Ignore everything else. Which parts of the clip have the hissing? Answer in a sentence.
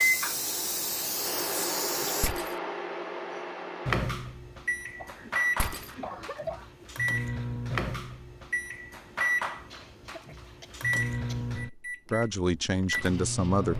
You can hear the hissing from 0.0 to 2.3 s.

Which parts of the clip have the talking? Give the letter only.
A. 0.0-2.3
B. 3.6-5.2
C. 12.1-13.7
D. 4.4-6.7
C.